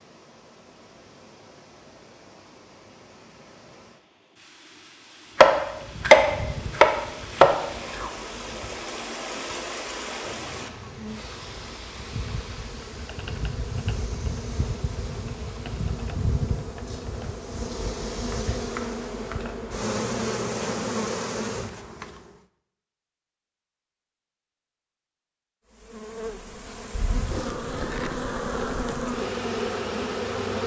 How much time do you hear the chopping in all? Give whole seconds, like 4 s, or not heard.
4 s.